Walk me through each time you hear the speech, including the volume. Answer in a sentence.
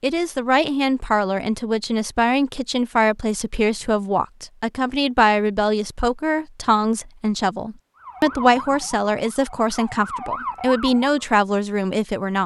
The speech can be heard from 0.0 to 12.4 s, at a steady volume.